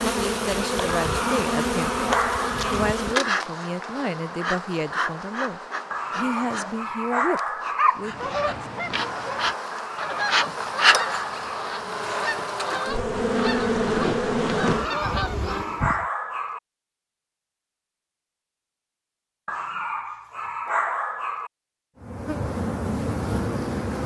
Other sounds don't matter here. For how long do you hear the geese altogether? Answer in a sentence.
The geese can be heard for 8 seconds in total.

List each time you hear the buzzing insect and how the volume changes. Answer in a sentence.
The buzzing insect can be heard from 0.0 to 16.1 s, getting quieter then louder; and briefly from 22.0 to 24.0 s.